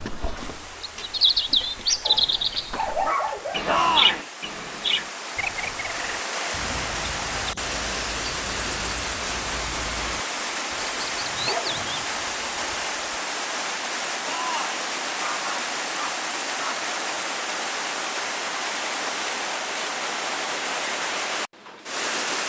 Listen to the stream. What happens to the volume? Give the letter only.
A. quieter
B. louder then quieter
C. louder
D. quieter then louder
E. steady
C.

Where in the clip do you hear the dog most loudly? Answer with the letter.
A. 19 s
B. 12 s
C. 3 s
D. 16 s
C.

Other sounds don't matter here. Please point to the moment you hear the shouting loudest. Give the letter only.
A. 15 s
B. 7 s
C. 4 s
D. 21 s
C.